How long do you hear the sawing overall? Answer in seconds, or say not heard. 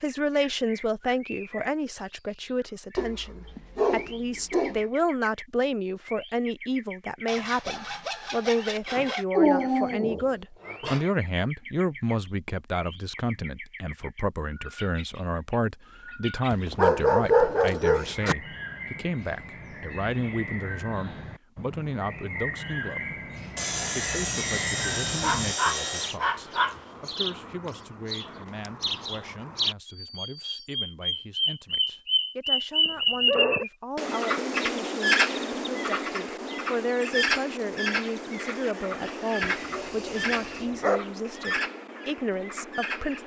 6 s.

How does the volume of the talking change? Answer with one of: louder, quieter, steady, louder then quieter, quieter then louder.
quieter then louder.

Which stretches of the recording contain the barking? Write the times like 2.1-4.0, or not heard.
3.0-4.8, 9.3-11.1, 16.5-18.4, 25.2-26.8, 32.9-33.6, 39.4-41.0.